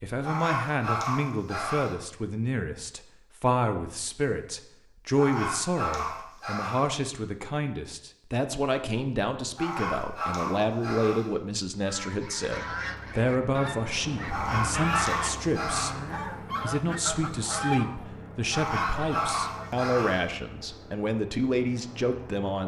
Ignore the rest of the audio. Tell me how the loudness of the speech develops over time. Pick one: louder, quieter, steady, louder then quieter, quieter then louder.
steady.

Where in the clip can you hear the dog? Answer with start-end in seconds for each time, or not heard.
0.2-1.9, 5.2-6.8, 9.6-11.2, 14.2-15.9, 18.5-20.2.